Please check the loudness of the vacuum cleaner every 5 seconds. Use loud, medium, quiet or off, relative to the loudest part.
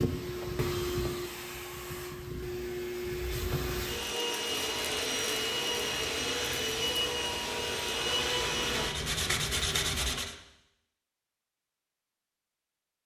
loud, loud, off.